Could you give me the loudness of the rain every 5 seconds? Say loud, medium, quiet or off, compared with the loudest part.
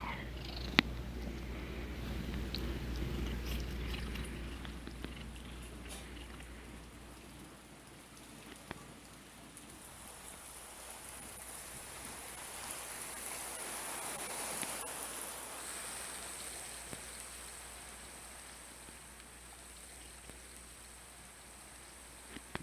medium, medium, loud, loud, medium.